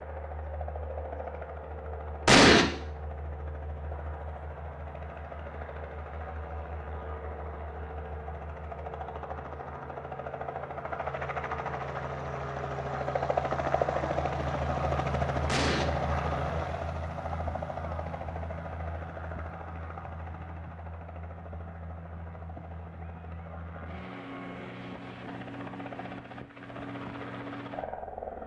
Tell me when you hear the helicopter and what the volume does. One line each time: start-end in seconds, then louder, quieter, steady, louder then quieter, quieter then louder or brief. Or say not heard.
0.0-28.4 louder then quieter.